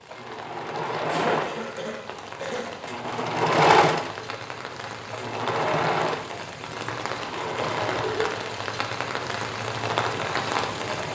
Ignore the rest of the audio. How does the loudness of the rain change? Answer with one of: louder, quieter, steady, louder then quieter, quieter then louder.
louder.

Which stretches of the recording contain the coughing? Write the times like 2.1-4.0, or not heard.
1.1-2.7, 7.5-8.4.